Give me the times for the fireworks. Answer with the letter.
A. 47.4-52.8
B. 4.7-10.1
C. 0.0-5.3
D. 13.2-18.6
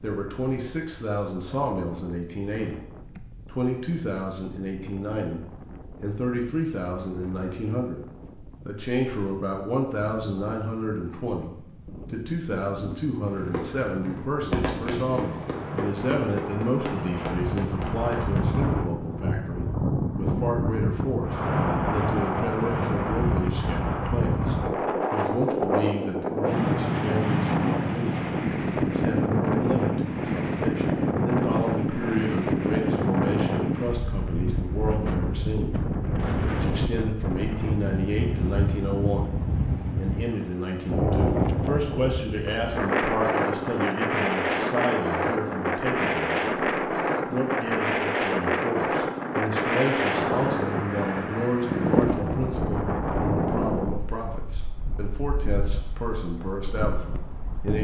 D.